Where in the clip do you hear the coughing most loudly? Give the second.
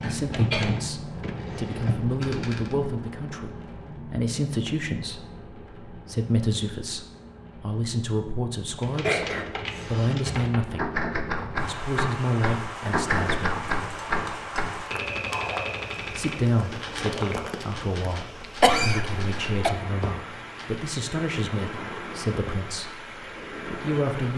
19 s.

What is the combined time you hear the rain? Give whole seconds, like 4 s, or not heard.
24 s.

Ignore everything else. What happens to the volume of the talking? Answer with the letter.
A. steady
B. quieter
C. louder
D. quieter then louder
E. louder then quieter
A.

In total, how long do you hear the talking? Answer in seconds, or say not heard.
22 s.